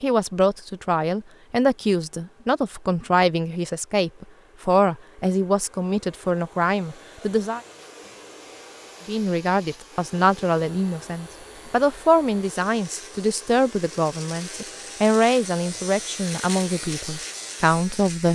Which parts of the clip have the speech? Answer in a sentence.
You can hear the speech from 0.0 to 7.6 s and from 9.1 to 18.3 s.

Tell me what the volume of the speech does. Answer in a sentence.
The loudness of the speech stays about the same.